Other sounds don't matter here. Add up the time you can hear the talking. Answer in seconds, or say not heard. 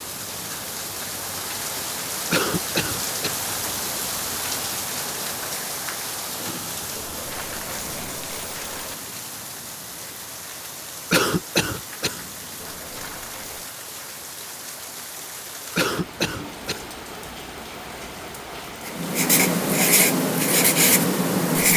not heard.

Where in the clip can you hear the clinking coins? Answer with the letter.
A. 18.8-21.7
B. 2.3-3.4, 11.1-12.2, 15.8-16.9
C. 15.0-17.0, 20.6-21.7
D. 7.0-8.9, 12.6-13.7
D.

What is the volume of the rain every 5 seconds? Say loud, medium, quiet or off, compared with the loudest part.
loud, loud, medium, medium, off.